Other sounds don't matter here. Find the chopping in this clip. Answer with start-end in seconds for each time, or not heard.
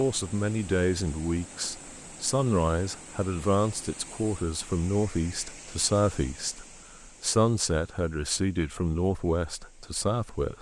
not heard.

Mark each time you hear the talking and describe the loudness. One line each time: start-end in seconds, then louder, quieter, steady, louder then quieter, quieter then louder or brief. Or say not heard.
0.0-10.5 steady.